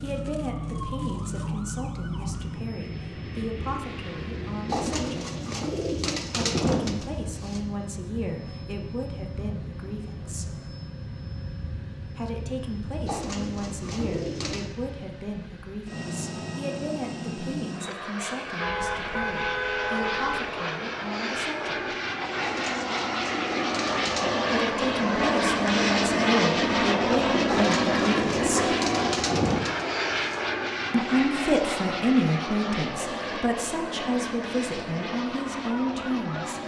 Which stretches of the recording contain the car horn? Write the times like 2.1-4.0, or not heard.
18.6-20.6.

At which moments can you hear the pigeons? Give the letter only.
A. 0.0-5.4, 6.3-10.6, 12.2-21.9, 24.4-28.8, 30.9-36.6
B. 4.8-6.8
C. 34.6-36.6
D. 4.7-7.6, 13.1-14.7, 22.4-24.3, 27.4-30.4
D.